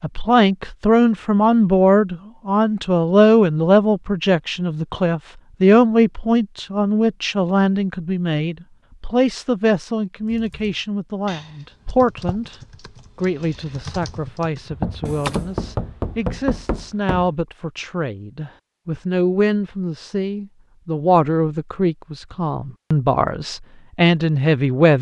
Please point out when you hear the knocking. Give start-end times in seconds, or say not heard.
14.7-17.3.